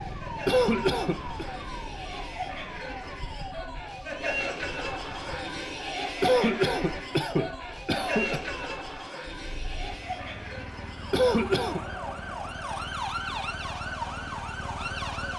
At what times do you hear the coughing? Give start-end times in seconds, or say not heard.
0.5-1.4, 6.2-8.4, 11.1-11.8.